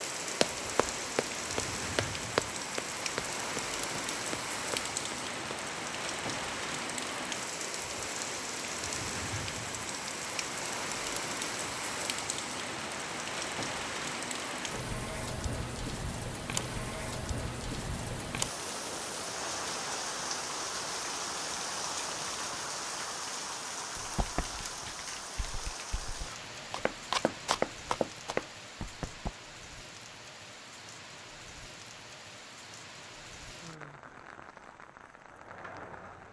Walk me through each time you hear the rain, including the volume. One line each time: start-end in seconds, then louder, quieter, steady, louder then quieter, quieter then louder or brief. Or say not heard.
0.0-36.2 quieter.